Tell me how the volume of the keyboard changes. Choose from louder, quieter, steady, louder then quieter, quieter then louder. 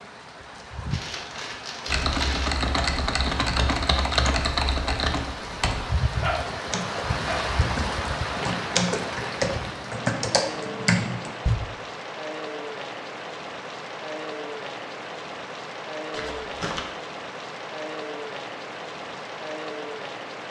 quieter then louder.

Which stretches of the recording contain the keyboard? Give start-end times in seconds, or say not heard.
1.9-11.6.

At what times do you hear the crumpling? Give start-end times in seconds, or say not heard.
0.9-2.5, 8.2-9.8, 16.1-16.9.